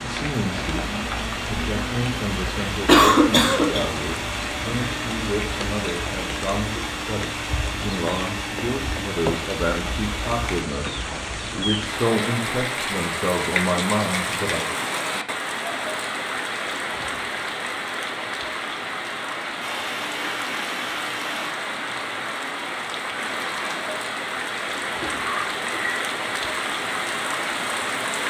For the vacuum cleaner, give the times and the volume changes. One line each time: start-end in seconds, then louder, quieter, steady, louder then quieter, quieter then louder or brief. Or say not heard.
0.0-10.7 steady
19.6-21.5 brief.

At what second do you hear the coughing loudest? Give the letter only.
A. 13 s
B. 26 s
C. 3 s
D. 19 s
C.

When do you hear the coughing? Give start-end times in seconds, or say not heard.
2.9-3.8, 24.9-25.9.